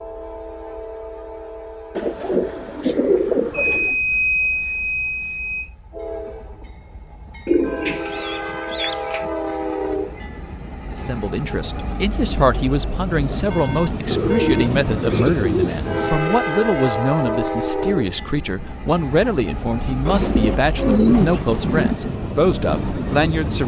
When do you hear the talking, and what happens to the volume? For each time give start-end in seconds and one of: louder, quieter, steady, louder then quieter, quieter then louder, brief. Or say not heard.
10.9-23.6 steady.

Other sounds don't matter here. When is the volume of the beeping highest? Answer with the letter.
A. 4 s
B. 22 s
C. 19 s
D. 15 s
A.